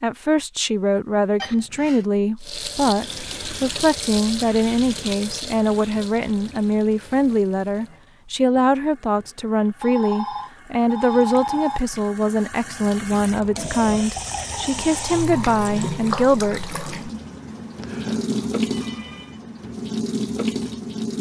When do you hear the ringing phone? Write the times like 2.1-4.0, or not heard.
1.4-2.0, 9.8-11.8, 17.5-19.4.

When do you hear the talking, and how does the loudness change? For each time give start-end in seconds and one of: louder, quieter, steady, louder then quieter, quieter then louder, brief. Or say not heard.
0.0-16.9 steady.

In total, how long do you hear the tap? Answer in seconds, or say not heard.
19 s.